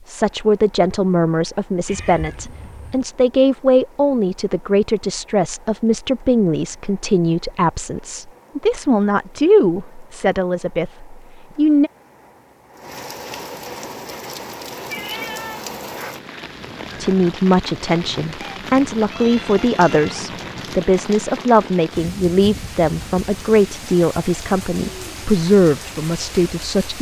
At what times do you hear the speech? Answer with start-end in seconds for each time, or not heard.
0.1-11.9, 17.0-26.9.